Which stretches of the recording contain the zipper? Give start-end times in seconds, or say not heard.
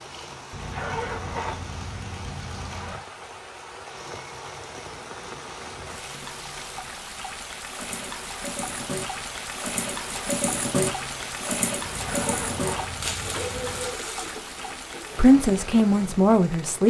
0.5-3.0, 11.8-13.9.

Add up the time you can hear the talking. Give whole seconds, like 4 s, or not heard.
2 s.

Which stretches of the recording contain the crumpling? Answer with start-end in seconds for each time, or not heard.
13.0-14.3.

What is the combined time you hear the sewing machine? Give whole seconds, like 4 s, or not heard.
17 s.